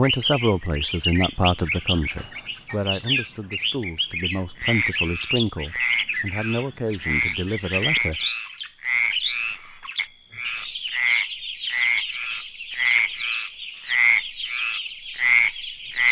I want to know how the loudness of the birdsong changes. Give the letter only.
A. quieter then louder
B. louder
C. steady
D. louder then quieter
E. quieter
E.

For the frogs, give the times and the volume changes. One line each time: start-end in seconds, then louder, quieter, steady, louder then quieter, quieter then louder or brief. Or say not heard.
4.5-16.0 louder.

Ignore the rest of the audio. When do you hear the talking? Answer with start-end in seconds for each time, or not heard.
0.0-8.2.